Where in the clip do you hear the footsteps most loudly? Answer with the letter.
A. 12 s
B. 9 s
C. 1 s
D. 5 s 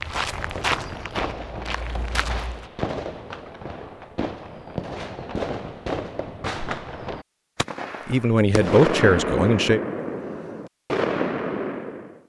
C.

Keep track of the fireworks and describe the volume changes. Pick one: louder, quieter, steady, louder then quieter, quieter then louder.
louder.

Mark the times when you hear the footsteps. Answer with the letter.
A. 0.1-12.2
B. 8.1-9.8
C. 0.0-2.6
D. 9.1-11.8
C.